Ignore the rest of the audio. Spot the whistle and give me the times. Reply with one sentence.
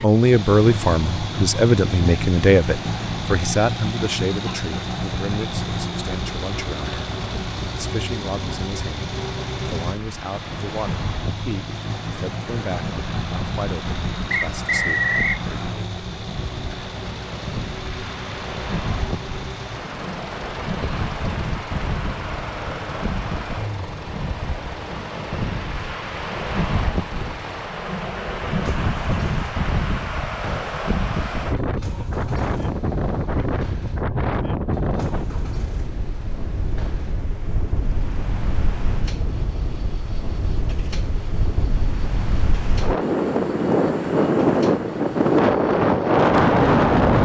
The whistle can be heard from 14.3 to 15.4 s.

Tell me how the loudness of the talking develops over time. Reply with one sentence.
The loudness of the talking goes down.